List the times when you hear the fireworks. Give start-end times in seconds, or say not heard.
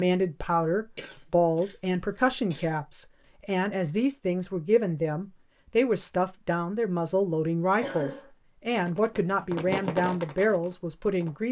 8.7-11.4.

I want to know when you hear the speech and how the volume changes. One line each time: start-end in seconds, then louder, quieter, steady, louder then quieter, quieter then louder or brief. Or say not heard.
0.0-11.4 steady.